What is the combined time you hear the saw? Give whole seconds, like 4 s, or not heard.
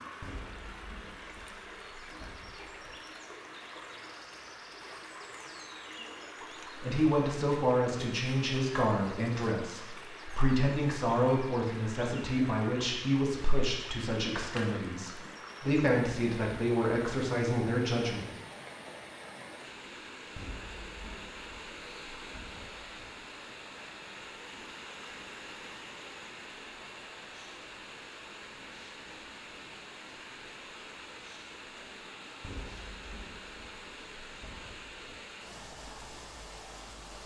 not heard.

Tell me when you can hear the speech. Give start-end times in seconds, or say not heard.
6.8-18.3.